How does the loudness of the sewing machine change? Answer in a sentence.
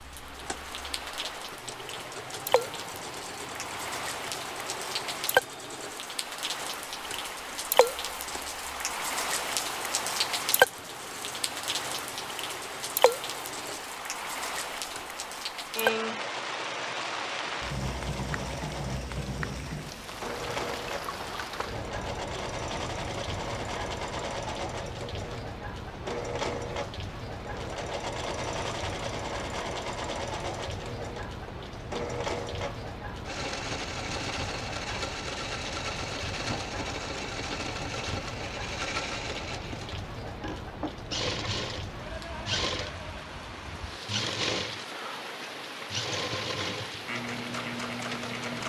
The loudness of the sewing machine goes up.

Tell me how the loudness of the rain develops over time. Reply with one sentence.
The volume of the rain goes down.